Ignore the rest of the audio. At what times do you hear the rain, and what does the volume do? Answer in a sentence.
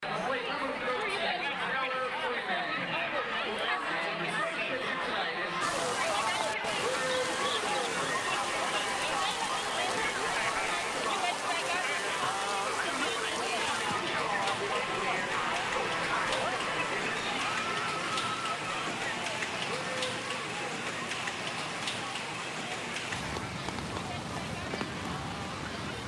The rain can be heard from 5.6 to 26.0 s, at a steady volume.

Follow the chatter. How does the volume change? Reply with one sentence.
The volume of the chatter goes down.